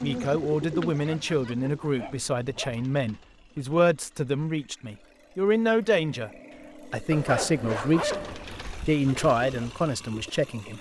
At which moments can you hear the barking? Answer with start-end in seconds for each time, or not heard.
1.1-2.8, 7.1-8.9.